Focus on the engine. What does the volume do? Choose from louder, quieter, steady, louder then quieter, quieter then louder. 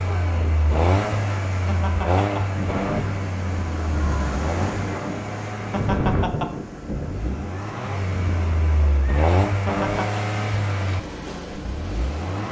quieter then louder.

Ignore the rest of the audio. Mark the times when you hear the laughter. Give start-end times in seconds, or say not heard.
1.6-2.5, 5.7-6.6, 9.7-10.2.